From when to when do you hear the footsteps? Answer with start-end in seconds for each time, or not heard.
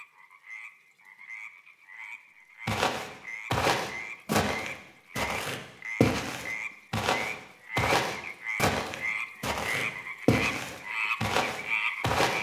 2.6-12.3.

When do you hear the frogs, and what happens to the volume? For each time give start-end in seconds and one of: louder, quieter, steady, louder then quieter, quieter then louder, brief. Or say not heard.
0.0-12.3 louder.